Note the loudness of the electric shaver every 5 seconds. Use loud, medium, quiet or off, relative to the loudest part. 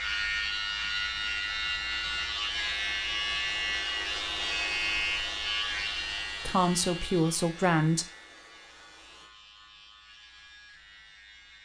loud, medium, quiet.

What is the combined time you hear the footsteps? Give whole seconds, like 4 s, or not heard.
not heard.